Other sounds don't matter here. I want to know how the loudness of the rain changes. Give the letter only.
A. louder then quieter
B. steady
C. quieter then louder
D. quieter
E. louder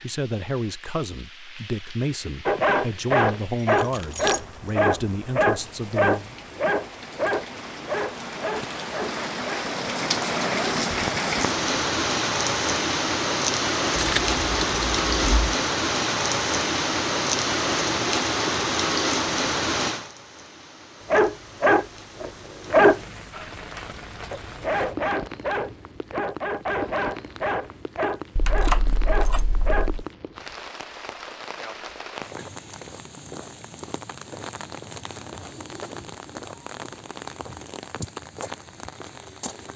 A.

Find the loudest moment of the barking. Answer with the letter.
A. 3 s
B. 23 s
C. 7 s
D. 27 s
B.